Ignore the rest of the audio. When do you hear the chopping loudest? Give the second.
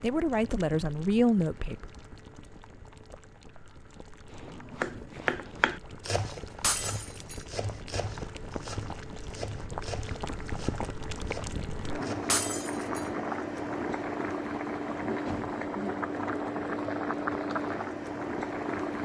5 s.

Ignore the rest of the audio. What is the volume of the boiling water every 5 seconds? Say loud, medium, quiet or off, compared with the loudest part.
quiet, medium, loud, loud.